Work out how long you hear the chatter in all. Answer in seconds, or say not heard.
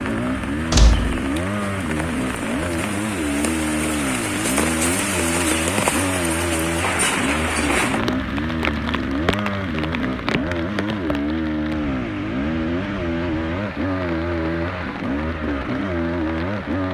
not heard.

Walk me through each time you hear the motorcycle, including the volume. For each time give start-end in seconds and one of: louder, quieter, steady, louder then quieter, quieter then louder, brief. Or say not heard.
0.0-16.8 steady.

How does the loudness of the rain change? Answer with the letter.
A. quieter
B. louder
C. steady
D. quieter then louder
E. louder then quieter
E.